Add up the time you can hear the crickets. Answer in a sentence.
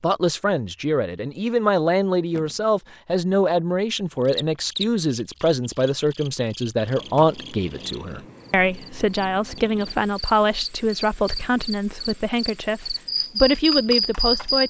You can hear the crickets for 11 seconds altogether.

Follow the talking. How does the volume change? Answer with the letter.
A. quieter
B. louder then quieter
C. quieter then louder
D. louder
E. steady
E.